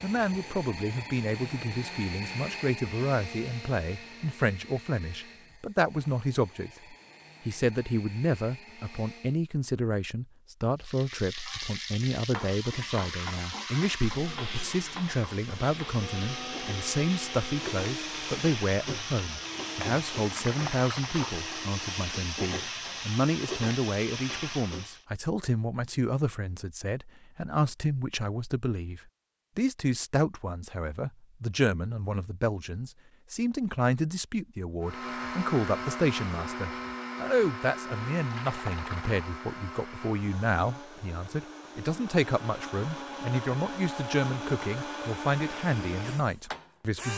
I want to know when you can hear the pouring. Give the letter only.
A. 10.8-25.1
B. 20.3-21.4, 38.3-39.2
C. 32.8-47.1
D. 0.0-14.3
B.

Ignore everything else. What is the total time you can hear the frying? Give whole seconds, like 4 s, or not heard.
14 s.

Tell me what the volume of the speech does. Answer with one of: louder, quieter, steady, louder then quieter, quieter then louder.
steady.